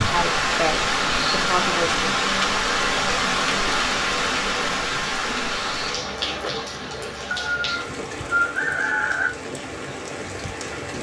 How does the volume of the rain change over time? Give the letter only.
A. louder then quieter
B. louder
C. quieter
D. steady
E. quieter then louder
C.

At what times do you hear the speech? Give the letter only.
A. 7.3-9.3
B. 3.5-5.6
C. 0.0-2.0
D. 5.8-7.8
C.